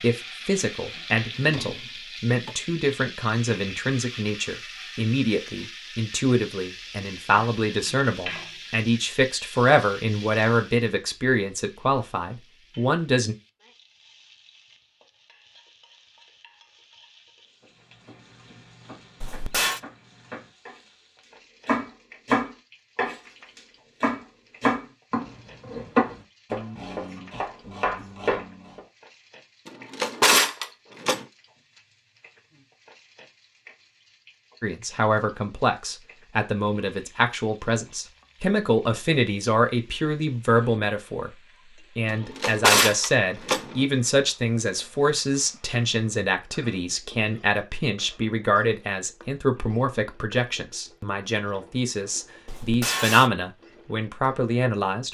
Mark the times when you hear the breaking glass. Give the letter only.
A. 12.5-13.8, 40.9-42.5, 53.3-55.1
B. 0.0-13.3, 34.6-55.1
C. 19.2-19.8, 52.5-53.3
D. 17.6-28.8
C.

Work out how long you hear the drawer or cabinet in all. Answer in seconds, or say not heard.
5 s.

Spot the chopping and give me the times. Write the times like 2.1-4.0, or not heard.
17.6-28.8.